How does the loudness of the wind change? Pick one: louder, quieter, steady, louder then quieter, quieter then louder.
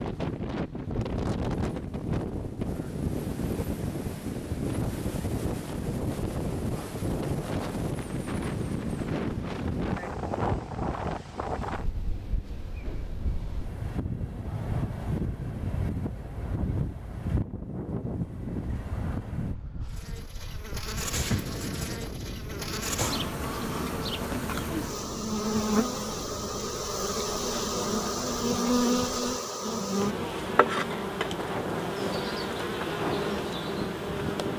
quieter.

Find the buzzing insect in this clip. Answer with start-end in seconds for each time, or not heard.
19.9-34.5.